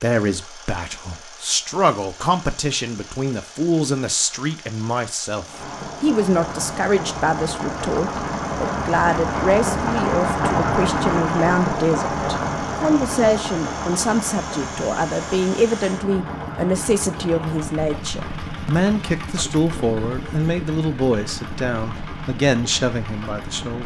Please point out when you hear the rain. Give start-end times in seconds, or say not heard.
5.4-23.8.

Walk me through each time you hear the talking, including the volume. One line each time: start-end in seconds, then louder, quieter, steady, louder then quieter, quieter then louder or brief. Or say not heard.
0.0-23.8 steady.